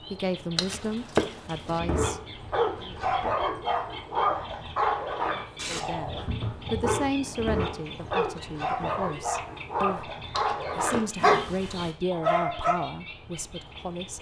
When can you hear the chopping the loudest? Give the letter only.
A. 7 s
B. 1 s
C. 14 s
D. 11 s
B.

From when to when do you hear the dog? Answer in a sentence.
You can hear the dog from 1.6 to 12.8 s.